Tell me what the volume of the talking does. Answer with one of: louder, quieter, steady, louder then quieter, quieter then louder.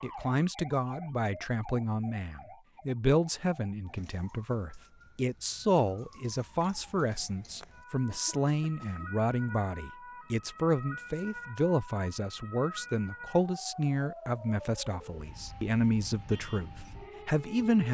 steady.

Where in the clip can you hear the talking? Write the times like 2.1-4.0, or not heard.
0.0-17.8.